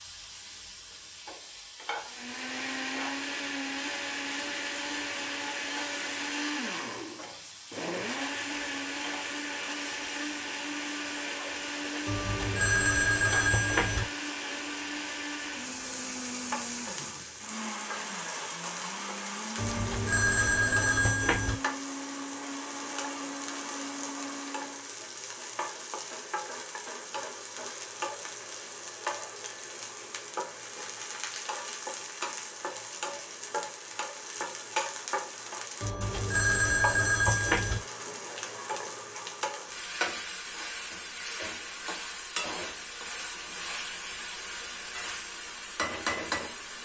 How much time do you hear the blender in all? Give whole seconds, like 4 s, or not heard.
23 s.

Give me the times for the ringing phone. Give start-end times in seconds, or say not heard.
12.1-14.1, 19.6-21.6, 35.8-37.8.